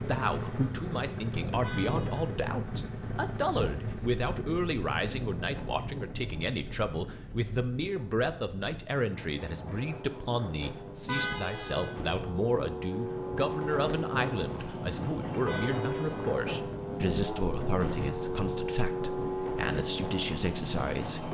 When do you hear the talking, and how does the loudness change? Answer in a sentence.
You can hear the talking from 0.1 to 21.2 s, at a steady volume.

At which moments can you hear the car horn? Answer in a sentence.
The car horn can be heard from 1.6 to 2.4 s, from 11.1 to 11.9 s and from 15.4 to 16.4 s.